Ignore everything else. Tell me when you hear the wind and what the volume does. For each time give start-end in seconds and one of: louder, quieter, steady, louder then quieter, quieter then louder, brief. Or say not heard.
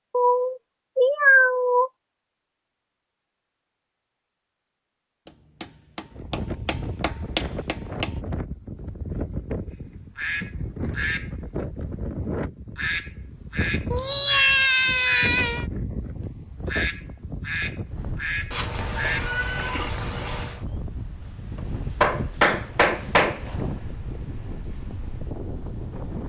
6.1-26.2 steady.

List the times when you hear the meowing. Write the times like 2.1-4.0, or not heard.
0.1-1.9, 13.9-15.7, 18.5-20.6.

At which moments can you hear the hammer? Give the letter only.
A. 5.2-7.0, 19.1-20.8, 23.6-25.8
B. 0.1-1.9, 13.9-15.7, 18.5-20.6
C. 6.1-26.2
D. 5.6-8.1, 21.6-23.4
D.